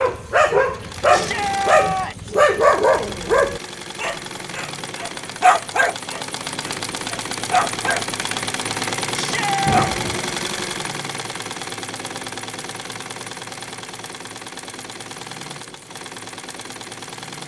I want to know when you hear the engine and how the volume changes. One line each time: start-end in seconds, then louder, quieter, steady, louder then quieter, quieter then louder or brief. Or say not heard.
0.0-17.4 louder then quieter.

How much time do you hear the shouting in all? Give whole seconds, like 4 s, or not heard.
2 s.